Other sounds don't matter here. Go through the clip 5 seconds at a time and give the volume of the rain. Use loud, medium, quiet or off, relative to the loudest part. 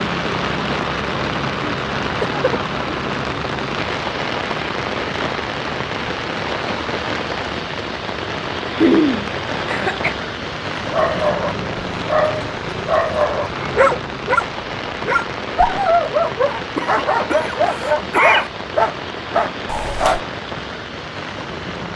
loud, loud, loud, medium, medium.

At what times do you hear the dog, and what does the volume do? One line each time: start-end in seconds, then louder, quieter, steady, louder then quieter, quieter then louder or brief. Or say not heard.
10.8-20.2 steady.